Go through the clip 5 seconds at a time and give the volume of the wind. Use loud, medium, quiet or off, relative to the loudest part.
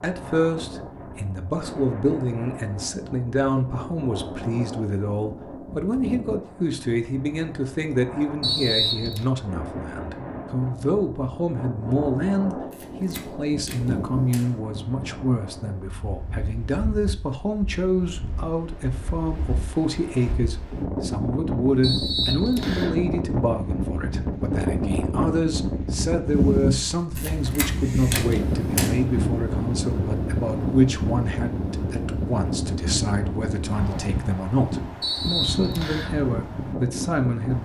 medium, medium, medium, quiet, loud, loud, loud, medium.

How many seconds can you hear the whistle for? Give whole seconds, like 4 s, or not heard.
3 s.